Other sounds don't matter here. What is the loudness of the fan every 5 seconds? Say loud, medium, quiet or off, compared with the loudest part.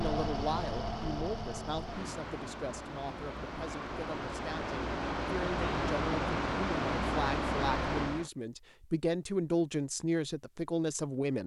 medium, loud, off.